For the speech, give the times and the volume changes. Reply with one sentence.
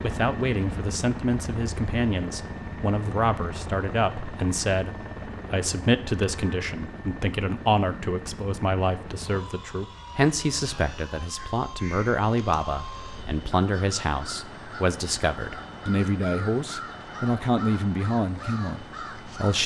The speech can be heard from 0.0 to 19.6 s, at a steady volume.